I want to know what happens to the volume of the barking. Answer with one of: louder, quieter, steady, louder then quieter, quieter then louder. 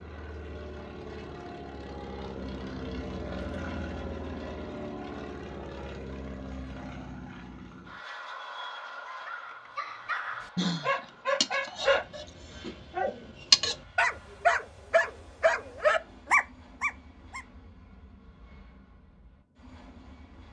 louder.